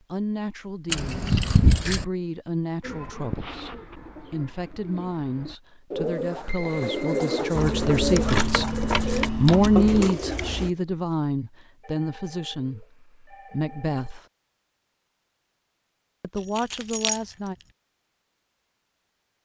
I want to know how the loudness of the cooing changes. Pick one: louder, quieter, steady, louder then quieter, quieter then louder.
louder.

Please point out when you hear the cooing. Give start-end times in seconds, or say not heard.
2.8-10.7.